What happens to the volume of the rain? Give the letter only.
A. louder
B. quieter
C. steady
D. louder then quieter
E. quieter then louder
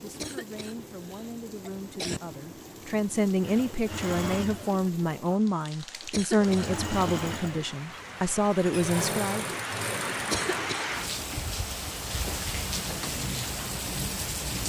A.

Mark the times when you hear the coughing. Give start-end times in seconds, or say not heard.
0.2-2.2, 6.1-6.7, 10.3-10.8.